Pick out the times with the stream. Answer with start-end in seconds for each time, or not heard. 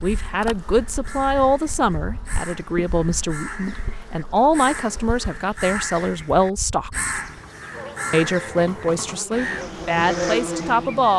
not heard.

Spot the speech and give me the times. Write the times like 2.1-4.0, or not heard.
0.0-7.0, 8.1-11.1.